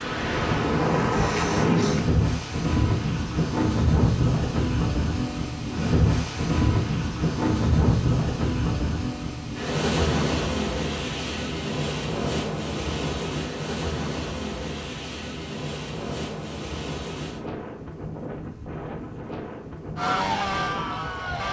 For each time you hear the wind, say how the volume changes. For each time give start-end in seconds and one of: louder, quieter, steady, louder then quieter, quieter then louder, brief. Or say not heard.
0.0-21.4 quieter.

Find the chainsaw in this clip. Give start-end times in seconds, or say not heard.
19.9-21.4.